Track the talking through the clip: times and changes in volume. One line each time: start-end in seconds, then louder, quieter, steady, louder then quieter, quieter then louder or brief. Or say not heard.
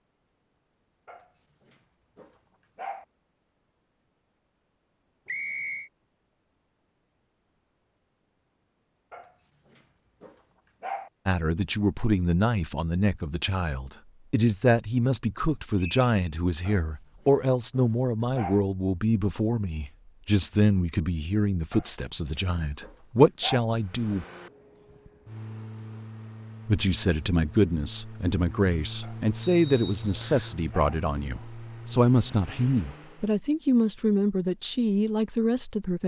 11.2-24.2 steady
26.6-36.0 steady.